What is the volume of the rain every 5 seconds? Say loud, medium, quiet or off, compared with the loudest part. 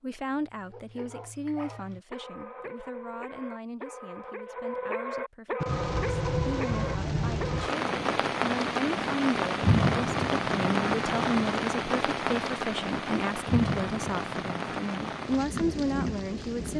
off, loud, loud, medium.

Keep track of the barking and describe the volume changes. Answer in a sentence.
The volume of the barking goes up.